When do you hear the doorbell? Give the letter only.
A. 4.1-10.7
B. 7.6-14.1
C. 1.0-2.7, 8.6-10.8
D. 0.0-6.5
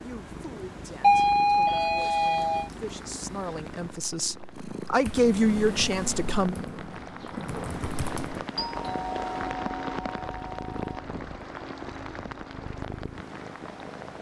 C.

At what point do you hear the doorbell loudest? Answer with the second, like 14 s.
1 s.